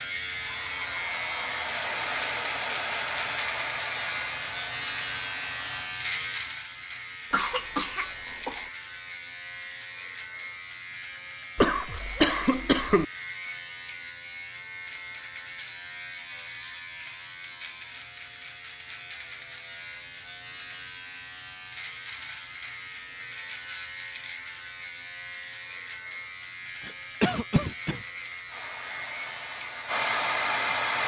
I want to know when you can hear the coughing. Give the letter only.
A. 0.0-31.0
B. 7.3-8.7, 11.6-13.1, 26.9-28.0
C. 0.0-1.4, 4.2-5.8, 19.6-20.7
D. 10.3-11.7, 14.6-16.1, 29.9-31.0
B.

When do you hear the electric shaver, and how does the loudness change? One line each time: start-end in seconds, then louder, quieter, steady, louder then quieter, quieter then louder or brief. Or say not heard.
0.0-31.0 quieter.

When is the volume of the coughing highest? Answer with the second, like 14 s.
12 s.